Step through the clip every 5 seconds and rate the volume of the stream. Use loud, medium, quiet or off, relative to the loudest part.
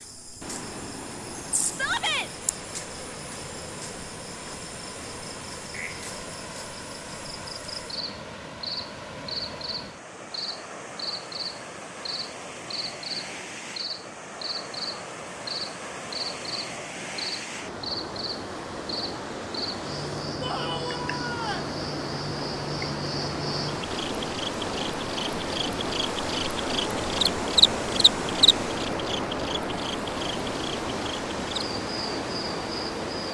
medium, medium, medium, medium, loud, loud, loud.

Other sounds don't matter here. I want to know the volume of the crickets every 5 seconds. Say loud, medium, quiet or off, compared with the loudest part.
quiet, medium, medium, medium, medium, loud, medium.